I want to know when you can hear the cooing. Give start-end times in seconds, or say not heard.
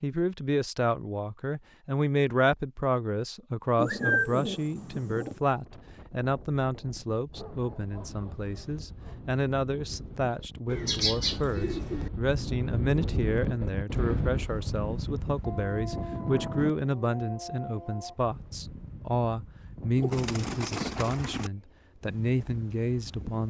3.8-5.4, 10.7-12.1, 19.9-21.5.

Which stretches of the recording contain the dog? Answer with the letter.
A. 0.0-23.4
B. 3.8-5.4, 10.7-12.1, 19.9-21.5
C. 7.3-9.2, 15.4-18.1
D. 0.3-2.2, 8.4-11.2
C.